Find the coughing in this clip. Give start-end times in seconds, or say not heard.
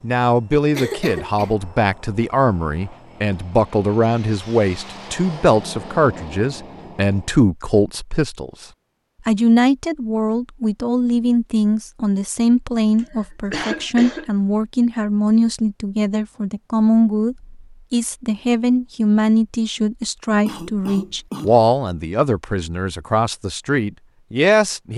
0.7-1.6, 12.9-14.3, 20.4-21.7.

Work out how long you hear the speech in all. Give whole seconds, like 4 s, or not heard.
24 s.